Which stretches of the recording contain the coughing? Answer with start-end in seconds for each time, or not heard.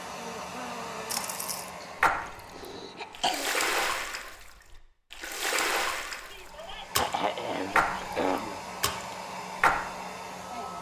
1.8-3.5, 6.3-8.6.